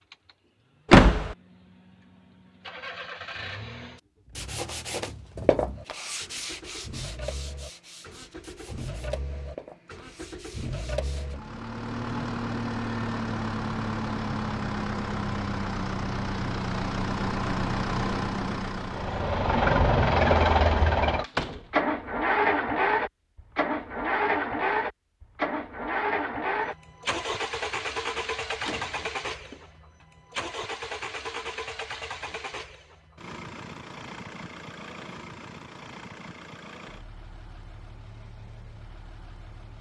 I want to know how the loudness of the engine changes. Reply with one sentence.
The volume of the engine goes up, then down.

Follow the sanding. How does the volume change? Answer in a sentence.
The volume of the sanding goes down.